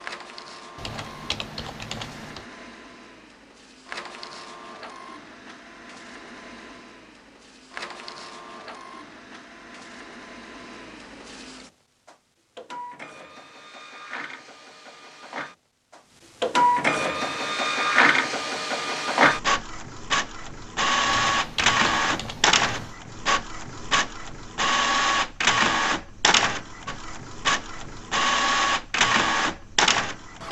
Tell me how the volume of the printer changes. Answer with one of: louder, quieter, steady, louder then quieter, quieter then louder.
louder.